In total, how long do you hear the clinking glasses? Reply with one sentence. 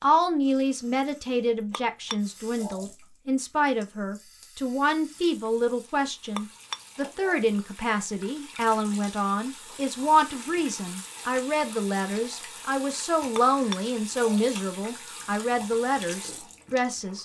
The clinking glasses can be heard for 3 seconds in total.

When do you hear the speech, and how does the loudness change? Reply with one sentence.
You can hear the speech from 0.0 to 17.2 s, at a steady volume.